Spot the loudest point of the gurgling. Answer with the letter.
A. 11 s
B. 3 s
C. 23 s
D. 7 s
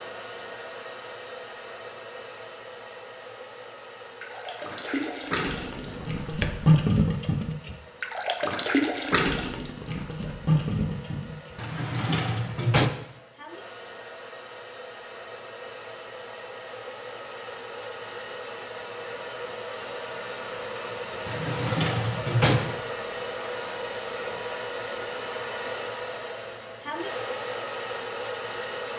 D.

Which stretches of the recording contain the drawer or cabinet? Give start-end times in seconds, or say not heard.
5.7-6.8, 11.6-12.9, 21.2-22.8.